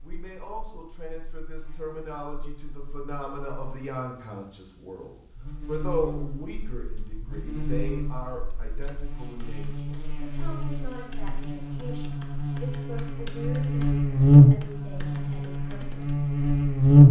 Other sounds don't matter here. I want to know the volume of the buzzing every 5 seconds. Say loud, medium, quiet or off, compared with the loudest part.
quiet, quiet, loud, loud.